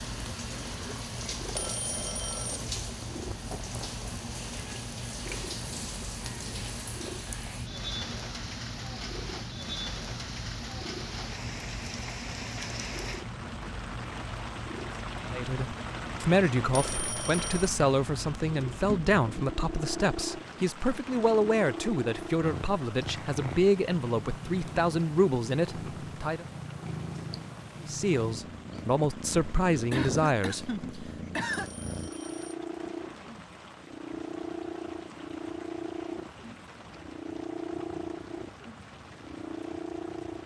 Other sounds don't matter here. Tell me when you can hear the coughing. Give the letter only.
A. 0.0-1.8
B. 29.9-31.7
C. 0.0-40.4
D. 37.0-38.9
B.